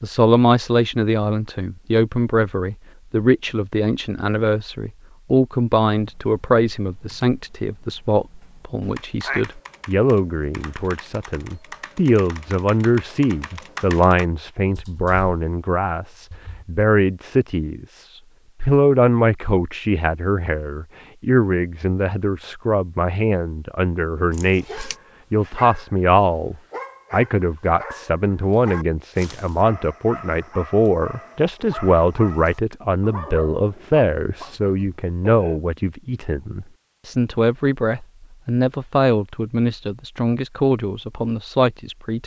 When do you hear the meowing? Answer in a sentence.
You can hear the meowing from 8.8 to 9.4 s and from 24.3 to 24.9 s.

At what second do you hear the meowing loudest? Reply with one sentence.
The loudest moment of the meowing is at 9 seconds.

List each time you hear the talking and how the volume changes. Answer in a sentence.
The talking can be heard from 0.0 to 42.2 s, at a steady volume.